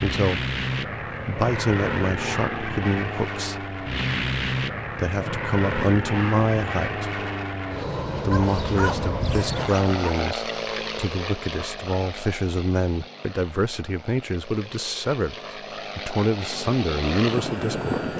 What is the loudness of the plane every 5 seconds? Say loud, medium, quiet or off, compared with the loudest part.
loud, loud, medium, loud.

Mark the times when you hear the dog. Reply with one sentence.
The dog can be heard from 8.3 to 9.8 s.